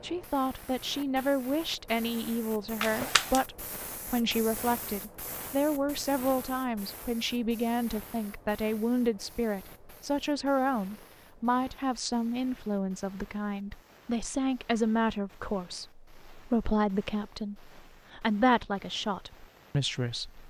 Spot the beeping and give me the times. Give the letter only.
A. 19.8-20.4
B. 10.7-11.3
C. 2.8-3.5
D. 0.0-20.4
C.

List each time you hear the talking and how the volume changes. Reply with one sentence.
You can hear the talking from 0.0 to 20.4 s, at a steady volume.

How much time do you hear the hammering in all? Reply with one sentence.
You can't hear the hammering here.